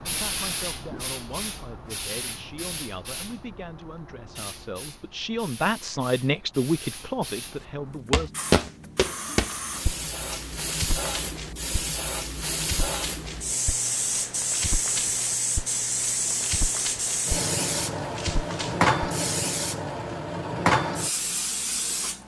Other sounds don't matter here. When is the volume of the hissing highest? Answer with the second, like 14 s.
19 s.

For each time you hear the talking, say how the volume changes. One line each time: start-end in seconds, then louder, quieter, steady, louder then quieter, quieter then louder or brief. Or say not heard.
0.0-8.3 louder.